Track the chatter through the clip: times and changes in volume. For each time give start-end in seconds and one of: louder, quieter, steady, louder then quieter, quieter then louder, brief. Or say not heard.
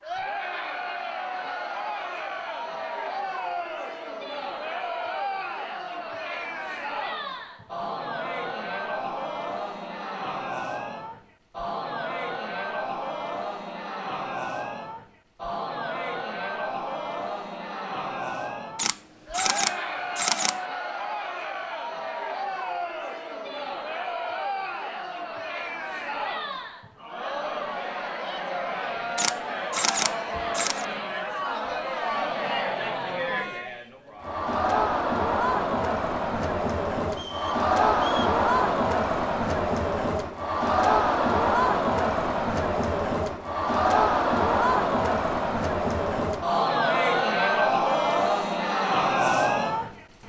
0.0-50.2 louder.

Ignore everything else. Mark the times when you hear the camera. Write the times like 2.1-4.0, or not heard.
18.8-20.6, 29.1-30.9.